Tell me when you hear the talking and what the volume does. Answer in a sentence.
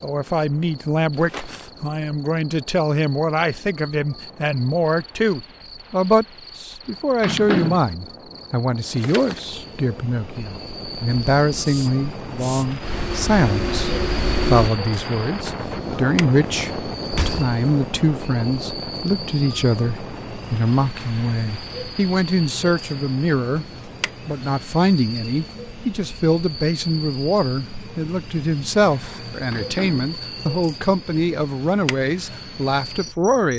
You can hear the talking from 0.0 to 23.6 s, at a steady volume; and from 24.2 to 33.5 s, at a steady volume.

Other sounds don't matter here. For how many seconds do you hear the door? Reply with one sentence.
The door can be heard for 2 seconds in total.